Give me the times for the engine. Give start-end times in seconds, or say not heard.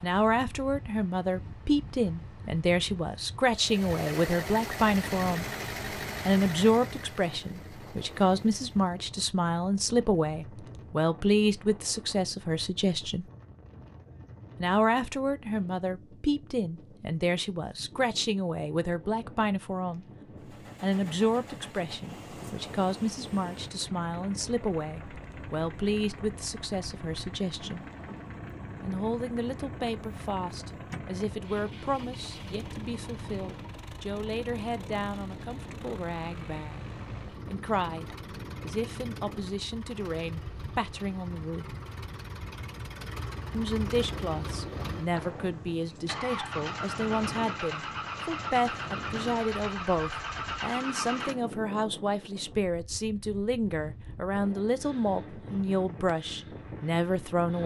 3.5-9.1, 20.4-51.6.